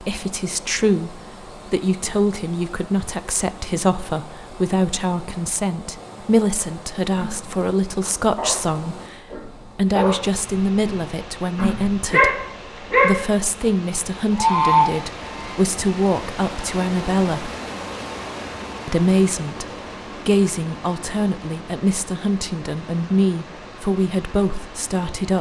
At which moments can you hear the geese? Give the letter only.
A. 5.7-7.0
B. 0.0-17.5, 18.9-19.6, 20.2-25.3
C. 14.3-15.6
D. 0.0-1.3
C.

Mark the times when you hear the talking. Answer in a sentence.
The talking can be heard from 0.0 to 17.5 s, from 18.9 to 19.6 s and from 20.2 to 25.3 s.